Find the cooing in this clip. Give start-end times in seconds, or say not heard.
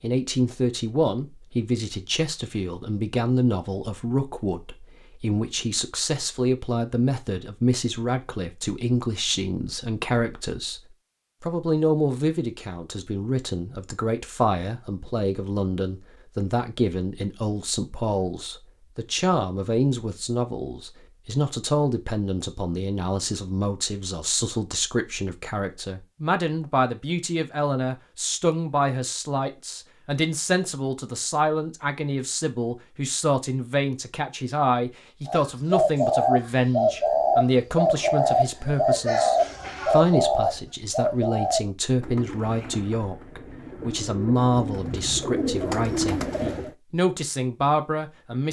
35.2-46.7.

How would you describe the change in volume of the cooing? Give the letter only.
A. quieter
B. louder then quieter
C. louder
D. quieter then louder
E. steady
D.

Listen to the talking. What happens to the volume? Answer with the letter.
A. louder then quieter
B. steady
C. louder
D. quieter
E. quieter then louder
B.